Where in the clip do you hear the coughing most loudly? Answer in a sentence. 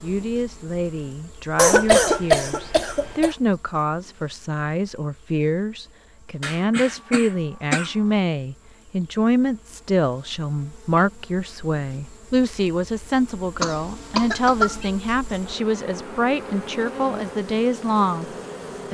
The volume of the coughing peaks at 2 seconds.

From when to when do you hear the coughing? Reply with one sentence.
The coughing can be heard from 1.6 to 3.4 s, from 6.4 to 7.9 s and from 13.6 to 14.8 s.